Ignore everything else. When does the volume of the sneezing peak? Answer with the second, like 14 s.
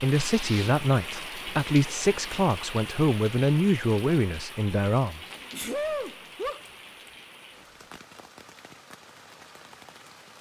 6 s.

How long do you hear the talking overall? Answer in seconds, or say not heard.
5 s.